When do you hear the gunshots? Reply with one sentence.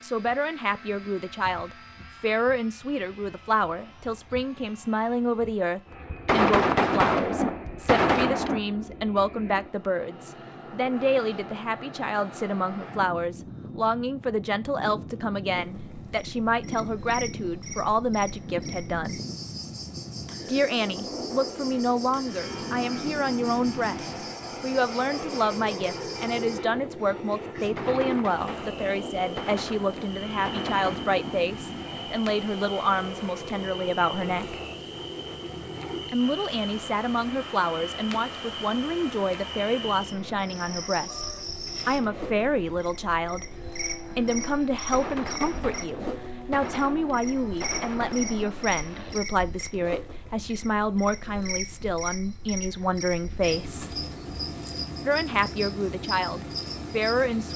The gunshots can be heard from 6.1 to 8.6 s, from 27.6 to 31.2 s and from 44.7 to 48.5 s.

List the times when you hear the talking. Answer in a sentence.
You can hear the talking from 0.0 to 19.2 s, from 20.4 to 34.6 s, from 36.0 to 41.2 s, from 41.9 to 43.5 s, from 44.1 to 54.0 s and from 55.0 to 57.5 s.